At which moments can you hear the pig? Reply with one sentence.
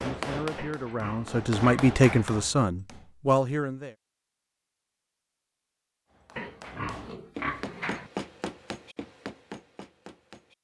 The pig can be heard from 0.6 to 2.3 s and from 6.3 to 8.1 s.